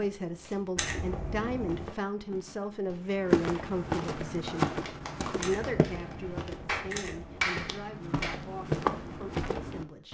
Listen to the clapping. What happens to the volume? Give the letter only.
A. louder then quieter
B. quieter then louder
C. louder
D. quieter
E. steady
B.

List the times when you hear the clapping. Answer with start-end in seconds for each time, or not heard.
4.3-8.3.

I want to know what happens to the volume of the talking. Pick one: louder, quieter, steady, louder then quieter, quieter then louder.
quieter.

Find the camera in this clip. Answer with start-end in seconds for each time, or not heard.
0.8-1.9, 5.4-7.5.